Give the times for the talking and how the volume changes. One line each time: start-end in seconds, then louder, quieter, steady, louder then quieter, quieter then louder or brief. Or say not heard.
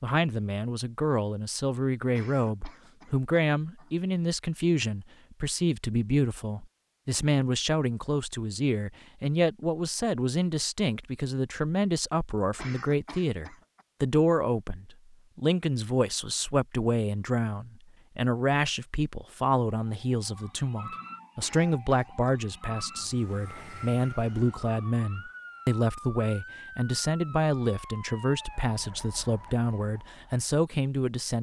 0.0-31.3 steady.